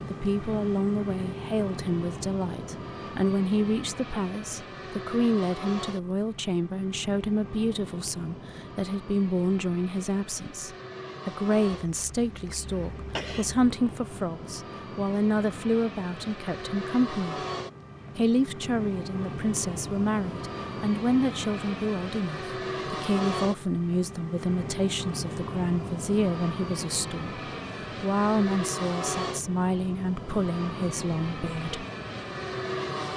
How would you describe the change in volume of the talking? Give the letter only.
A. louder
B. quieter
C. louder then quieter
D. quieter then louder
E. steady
E.